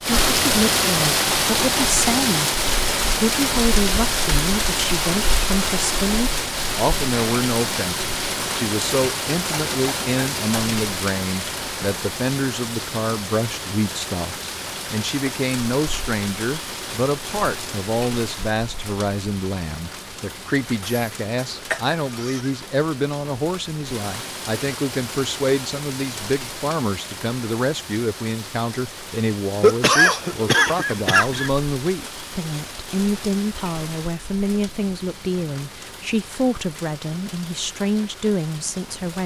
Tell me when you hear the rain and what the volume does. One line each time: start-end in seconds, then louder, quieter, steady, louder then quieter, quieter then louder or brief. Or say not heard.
0.0-39.2 quieter.